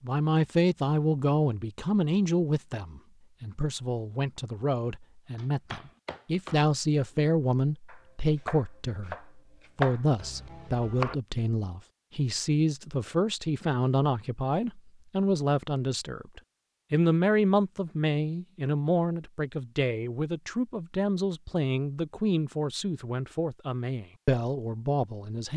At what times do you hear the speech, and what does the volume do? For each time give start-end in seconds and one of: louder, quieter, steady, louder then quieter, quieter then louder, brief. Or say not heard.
0.0-25.5 steady.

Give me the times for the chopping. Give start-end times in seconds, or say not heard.
5.3-11.2.